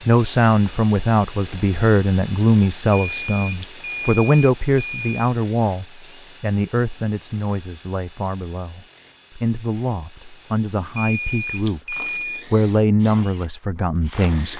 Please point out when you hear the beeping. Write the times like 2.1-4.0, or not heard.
2.9-5.3, 10.9-12.4.